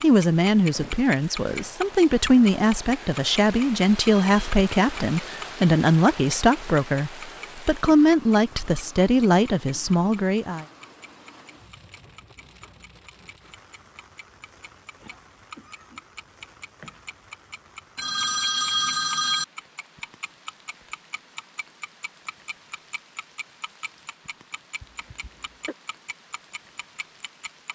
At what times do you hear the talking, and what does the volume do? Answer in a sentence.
The talking can be heard from 0.0 to 10.7 s, at a steady volume.